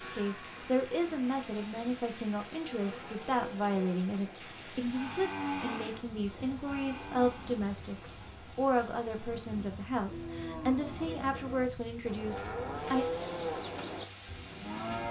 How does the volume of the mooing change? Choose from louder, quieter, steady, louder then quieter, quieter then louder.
louder.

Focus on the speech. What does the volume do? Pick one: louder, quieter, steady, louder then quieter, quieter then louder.
steady.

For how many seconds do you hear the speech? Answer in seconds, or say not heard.
13 s.